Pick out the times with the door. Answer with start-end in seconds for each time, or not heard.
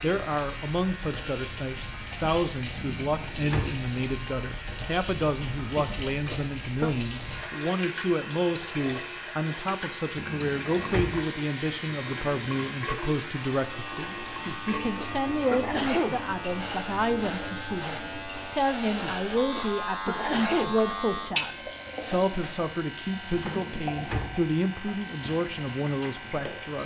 2.8-3.8, 10.2-11.2, 23.3-24.4.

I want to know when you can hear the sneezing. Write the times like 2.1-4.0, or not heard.
5.8-7.0, 14.4-16.2, 19.0-20.8.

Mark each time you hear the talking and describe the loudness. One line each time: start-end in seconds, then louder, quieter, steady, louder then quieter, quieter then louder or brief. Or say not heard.
0.0-26.8 steady.